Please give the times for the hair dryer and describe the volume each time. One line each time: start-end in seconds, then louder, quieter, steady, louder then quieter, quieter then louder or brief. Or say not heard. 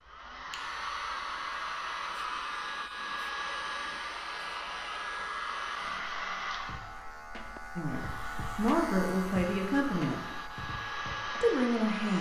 0.0-12.1 quieter then louder.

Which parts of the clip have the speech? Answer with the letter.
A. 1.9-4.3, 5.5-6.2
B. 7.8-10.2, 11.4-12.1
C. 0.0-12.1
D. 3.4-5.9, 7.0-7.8
B.